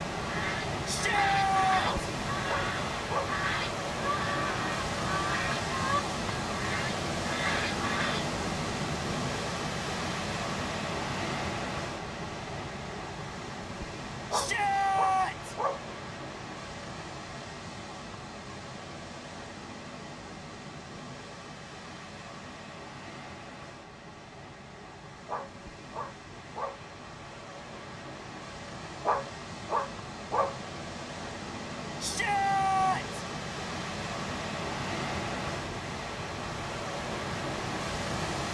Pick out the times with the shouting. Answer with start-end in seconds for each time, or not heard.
0.8-1.9, 14.3-15.6, 32.0-33.2.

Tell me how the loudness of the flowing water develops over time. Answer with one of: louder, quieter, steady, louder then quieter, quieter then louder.
quieter then louder.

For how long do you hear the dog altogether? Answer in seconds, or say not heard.
6 s.